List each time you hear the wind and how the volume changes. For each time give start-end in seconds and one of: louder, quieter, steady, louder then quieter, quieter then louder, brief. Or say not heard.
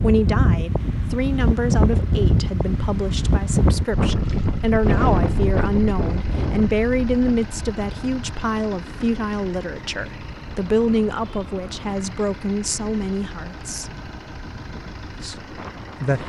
0.0-16.2 quieter.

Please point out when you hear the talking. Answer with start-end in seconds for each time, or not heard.
0.0-13.9, 15.2-16.2.